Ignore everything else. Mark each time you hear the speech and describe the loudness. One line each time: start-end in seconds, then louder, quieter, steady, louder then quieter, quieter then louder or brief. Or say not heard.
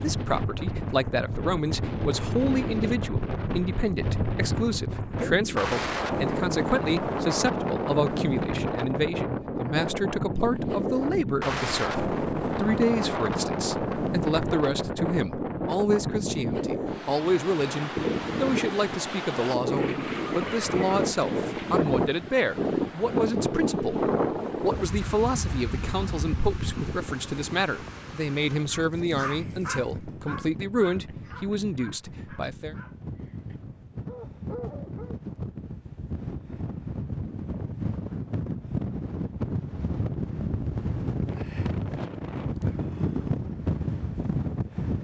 0.0-32.8 steady.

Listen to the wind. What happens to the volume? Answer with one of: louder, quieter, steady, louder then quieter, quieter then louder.
quieter then louder.